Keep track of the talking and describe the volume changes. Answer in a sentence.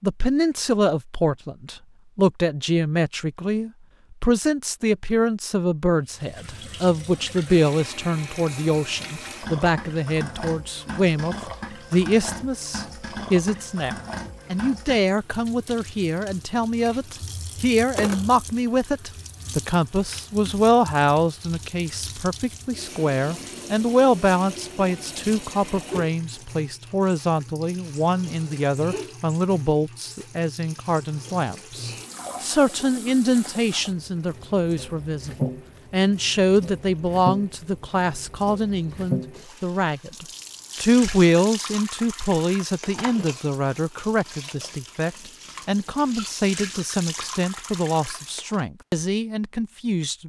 The loudness of the talking stays about the same.